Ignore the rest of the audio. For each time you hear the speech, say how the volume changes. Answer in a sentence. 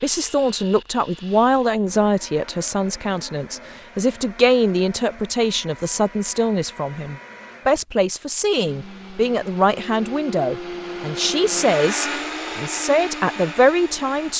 You can hear the speech from 0.0 to 14.3 s, at a steady volume.